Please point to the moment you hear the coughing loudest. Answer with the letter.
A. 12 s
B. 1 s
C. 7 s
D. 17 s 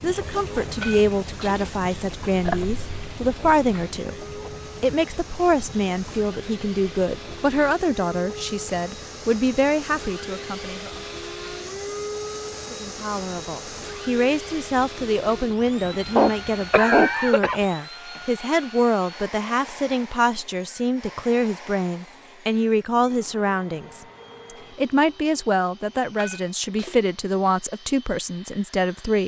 D.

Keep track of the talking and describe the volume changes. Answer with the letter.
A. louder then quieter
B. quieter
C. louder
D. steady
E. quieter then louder
D.